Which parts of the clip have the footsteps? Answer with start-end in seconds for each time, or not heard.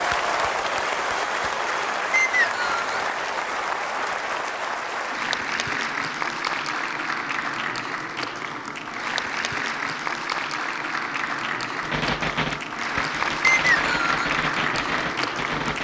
not heard.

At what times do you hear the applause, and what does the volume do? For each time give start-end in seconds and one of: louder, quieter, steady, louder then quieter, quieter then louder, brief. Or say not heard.
0.0-15.7 steady.